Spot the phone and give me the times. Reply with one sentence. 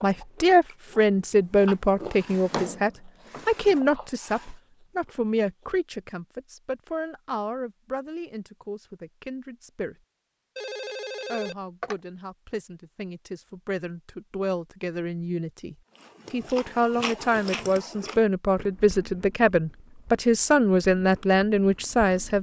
The phone can be heard from 10.6 to 11.9 s.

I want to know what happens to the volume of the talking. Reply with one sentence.
The loudness of the talking goes down, then up.